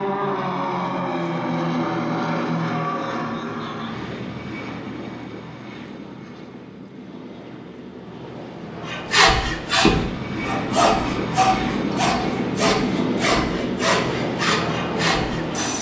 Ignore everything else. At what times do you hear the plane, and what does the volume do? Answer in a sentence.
You can hear the plane from 0.0 to 15.7 s, getting quieter then louder.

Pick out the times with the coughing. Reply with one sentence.
You can't hear the coughing here.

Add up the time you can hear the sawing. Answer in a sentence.
You can hear the sawing for 7 seconds altogether.